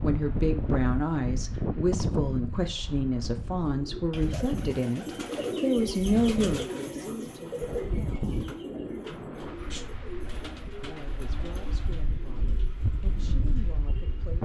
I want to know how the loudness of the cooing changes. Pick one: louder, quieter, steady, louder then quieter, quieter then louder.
quieter.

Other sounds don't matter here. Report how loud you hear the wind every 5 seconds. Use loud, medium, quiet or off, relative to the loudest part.
loud, medium, medium.